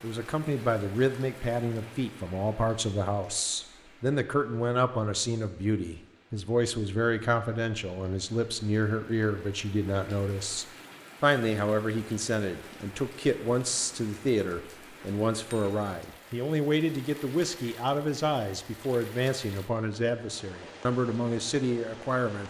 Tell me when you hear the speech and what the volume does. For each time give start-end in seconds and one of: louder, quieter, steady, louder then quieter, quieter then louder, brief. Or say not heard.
0.0-22.4 steady.